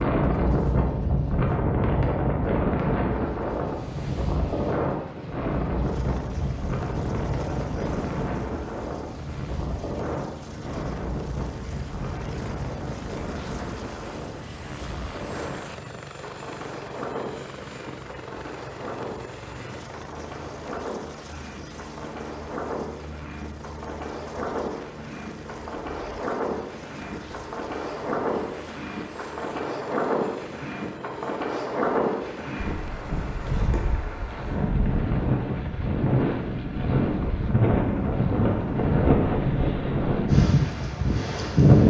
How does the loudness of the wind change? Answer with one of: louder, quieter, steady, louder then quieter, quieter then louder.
quieter then louder.